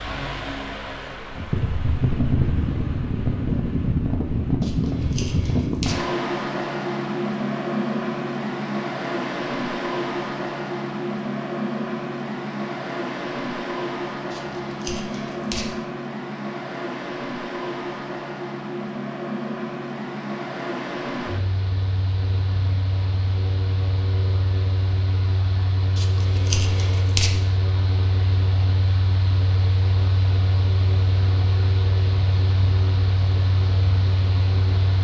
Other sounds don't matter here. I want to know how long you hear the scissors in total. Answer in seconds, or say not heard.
4 s.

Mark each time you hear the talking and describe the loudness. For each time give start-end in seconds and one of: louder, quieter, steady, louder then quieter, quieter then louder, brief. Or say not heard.
not heard.